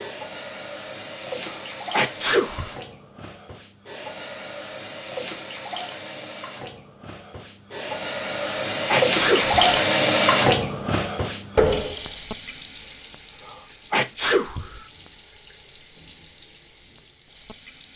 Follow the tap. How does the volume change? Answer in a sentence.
The loudness of the tap goes up, then down.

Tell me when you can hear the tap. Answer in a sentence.
The tap can be heard from 0.0 to 17.9 s.